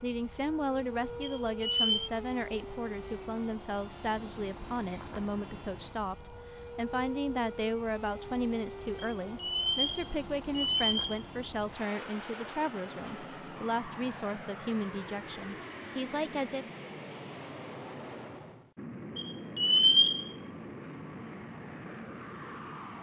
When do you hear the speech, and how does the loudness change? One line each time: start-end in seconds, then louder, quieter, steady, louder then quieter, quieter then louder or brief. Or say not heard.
0.0-16.6 steady.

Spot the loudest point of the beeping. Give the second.
20 s.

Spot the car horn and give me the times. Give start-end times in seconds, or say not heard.
not heard.